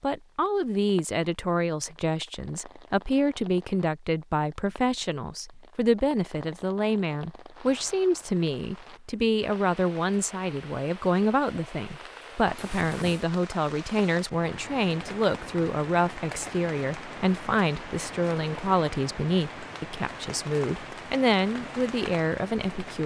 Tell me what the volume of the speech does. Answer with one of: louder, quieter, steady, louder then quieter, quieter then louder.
steady.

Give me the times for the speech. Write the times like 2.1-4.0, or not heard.
0.0-23.0.